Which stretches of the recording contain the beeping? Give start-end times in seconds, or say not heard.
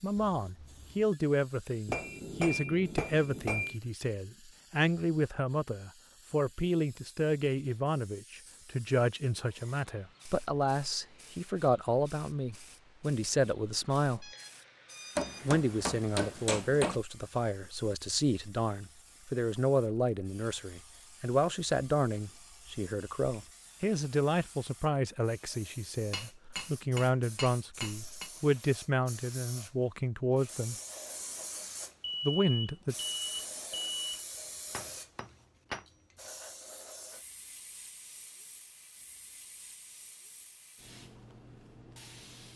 0.1-1.2, 14.2-15.6, 32.0-34.2.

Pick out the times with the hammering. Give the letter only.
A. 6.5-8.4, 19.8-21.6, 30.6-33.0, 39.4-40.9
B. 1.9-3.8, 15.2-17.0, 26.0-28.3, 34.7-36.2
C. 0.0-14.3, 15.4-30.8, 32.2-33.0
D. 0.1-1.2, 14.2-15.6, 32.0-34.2
B.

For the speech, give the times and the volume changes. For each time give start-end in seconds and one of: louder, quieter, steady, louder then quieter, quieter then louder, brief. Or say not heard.
0.0-14.3 steady
15.4-30.8 steady
32.2-33.0 brief.